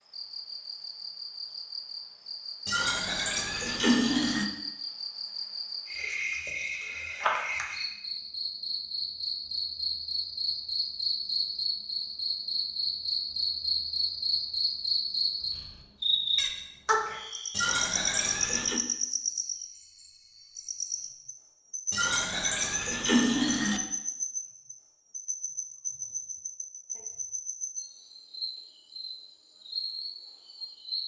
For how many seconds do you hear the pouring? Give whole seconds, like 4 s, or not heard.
5 s.